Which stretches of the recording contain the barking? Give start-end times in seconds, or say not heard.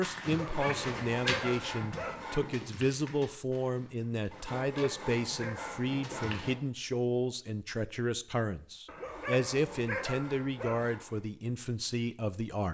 0.2-2.2, 4.6-6.4, 8.8-10.8.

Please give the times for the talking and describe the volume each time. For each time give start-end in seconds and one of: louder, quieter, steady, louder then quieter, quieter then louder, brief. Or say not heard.
0.0-12.6 steady.